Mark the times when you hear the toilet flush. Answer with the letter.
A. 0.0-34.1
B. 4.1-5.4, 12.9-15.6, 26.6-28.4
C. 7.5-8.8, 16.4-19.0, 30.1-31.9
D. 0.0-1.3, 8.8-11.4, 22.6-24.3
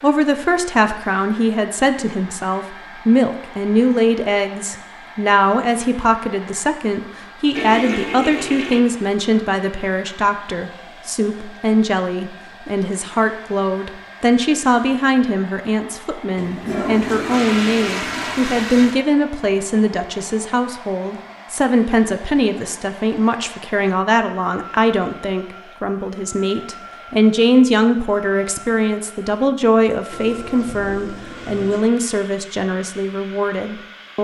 C.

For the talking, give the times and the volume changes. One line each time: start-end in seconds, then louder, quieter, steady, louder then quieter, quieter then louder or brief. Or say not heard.
0.0-34.1 steady.